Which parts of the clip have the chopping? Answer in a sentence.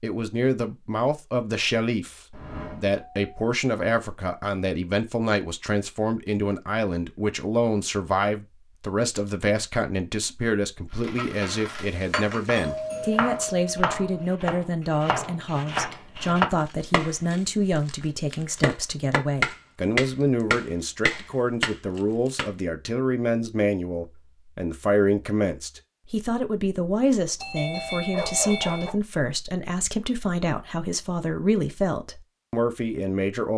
You can hear the chopping from 12.4 to 22.4 s.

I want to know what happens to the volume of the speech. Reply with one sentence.
The volume of the speech stays about the same.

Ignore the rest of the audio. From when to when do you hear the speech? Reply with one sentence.
The speech can be heard from 0.0 to 33.5 s.